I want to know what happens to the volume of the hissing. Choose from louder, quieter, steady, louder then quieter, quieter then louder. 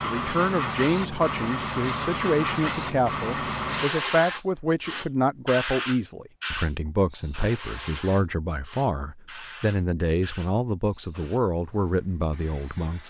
quieter.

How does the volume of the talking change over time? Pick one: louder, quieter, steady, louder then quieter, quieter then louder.
steady.